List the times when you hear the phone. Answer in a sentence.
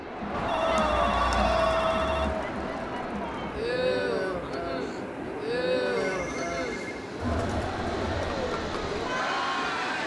The phone can be heard from 0.3 to 2.4 s and from 5.8 to 7.0 s.